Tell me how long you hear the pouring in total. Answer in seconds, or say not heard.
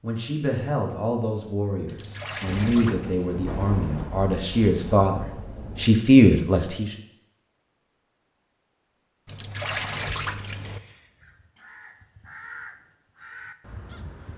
3 s.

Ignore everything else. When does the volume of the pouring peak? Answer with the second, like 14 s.
10 s.